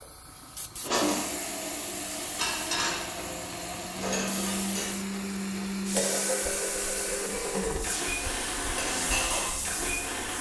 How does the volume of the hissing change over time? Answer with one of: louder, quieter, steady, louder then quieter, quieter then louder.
louder.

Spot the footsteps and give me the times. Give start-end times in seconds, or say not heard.
not heard.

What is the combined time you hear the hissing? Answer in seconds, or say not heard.
10 s.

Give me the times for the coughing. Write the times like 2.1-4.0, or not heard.
not heard.